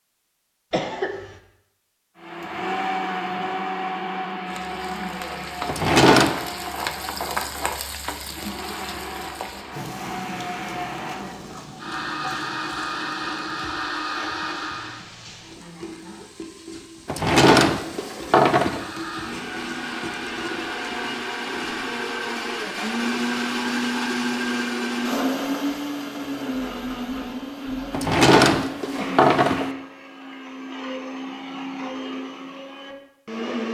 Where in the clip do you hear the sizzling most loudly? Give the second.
7 s.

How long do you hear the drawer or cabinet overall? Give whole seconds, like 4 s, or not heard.
4 s.